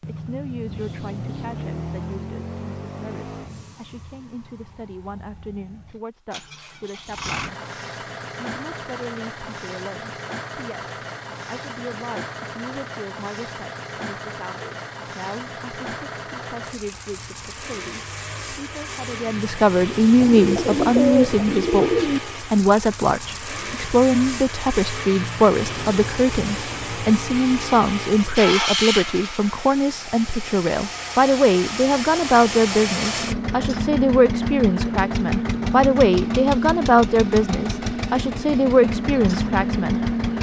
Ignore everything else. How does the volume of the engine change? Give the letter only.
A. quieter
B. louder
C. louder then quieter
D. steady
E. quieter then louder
B.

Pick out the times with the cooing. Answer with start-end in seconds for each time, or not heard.
20.2-22.2.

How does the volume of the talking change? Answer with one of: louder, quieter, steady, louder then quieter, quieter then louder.
louder.